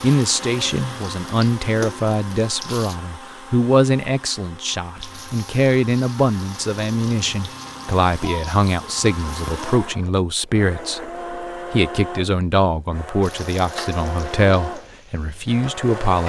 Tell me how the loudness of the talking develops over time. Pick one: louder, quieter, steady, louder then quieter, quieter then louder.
steady.